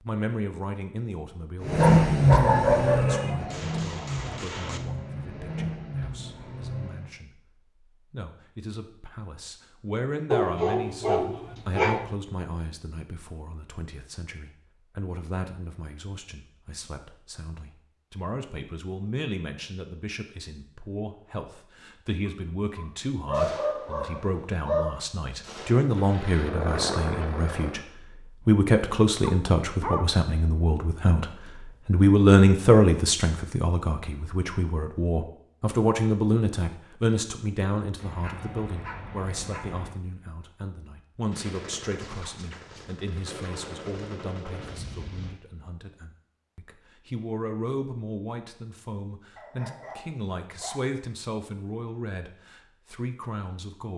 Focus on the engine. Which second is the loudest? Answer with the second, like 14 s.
2 s.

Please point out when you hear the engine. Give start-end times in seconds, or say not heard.
1.6-7.2, 25.9-27.9.